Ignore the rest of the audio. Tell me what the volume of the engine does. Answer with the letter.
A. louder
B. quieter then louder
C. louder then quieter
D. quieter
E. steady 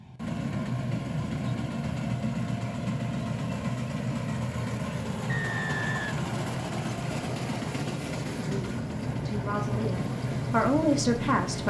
E.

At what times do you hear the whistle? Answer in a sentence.
The whistle can be heard from 5.2 to 6.2 s.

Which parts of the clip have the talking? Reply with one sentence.
The talking can be heard from 8.4 to 11.6 s.